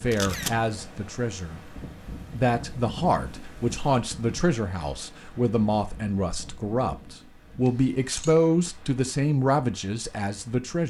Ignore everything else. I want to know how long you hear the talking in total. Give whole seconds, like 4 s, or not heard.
10 s.